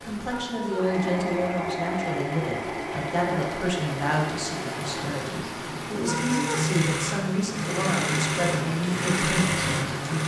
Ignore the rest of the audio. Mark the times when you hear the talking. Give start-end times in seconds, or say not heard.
0.0-10.2.